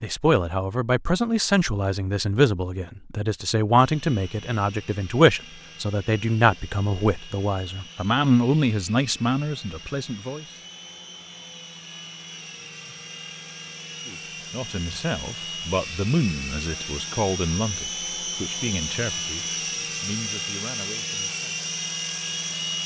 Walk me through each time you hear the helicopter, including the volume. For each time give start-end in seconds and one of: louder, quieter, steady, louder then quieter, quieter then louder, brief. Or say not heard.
3.8-22.8 louder.